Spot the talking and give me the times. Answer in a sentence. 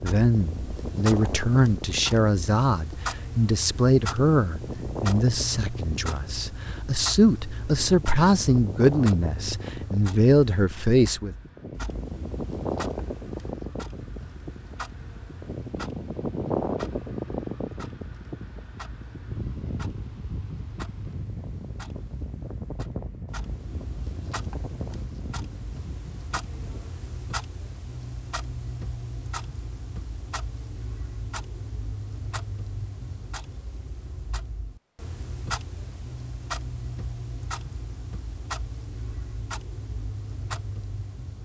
You can hear the talking from 0.0 to 11.3 s.